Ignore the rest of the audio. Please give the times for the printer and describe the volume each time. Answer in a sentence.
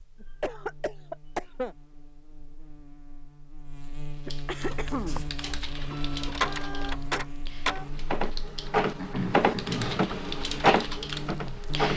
The printer can be heard from 4.6 to 11.9 s, getting louder.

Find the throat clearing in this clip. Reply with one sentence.
You can hear the throat clearing from 0.2 to 1.8 s, from 4.2 to 5.2 s and from 8.9 to 10.1 s.